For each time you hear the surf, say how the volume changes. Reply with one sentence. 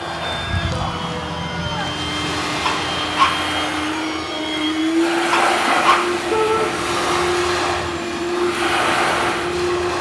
The surf can be heard from 0.0 to 9.9 s, getting louder.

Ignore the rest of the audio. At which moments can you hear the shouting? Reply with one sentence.
The shouting can be heard from 0.7 to 1.9 s and from 6.3 to 6.7 s.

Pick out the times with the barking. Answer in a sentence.
The barking can be heard from 2.6 to 3.4 s and from 5.3 to 6.0 s.